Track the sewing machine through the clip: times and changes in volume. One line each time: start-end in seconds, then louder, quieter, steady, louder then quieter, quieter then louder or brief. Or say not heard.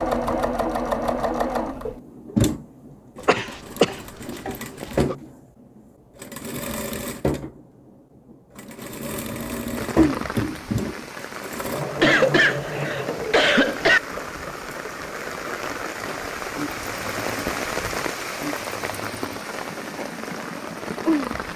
0.0-21.5 quieter.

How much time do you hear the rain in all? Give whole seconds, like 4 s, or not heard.
12 s.